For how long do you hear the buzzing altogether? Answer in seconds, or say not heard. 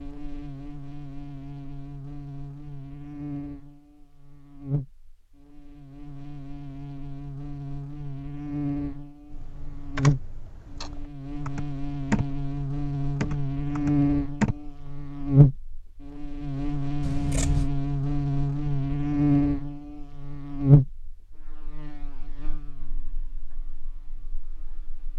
25 s.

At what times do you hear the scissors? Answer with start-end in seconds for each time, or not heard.
17.0-17.7.